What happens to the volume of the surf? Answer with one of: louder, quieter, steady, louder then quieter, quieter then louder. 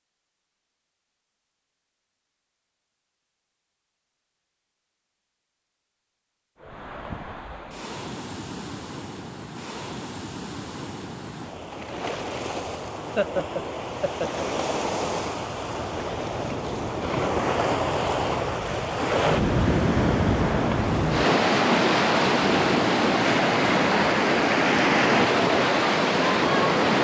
louder.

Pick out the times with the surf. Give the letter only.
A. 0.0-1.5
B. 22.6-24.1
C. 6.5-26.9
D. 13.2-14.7
C.